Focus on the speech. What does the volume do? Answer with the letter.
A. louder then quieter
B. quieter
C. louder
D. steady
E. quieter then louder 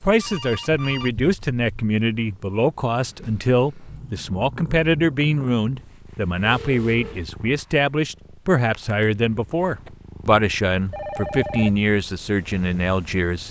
D.